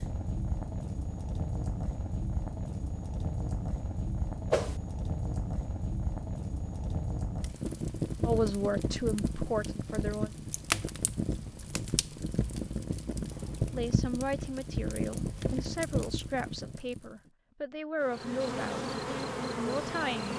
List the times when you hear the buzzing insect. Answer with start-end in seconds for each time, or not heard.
18.0-20.3.